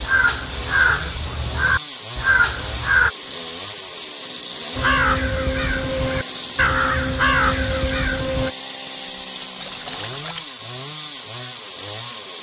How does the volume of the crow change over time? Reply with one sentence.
The loudness of the crow stays about the same.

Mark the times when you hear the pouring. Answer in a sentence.
You can hear the pouring from 9.6 to 10.4 s.